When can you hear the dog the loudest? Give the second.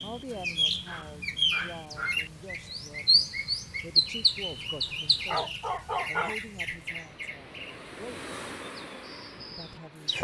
6 s.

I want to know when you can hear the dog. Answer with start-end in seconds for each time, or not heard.
0.3-2.2, 5.2-6.3.